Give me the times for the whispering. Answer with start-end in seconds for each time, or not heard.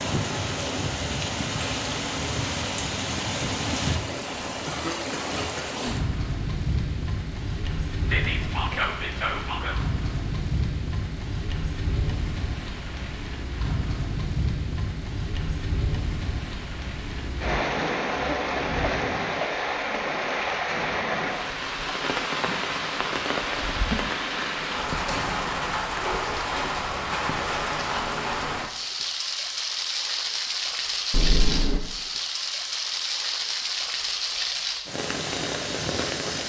8.1-9.8.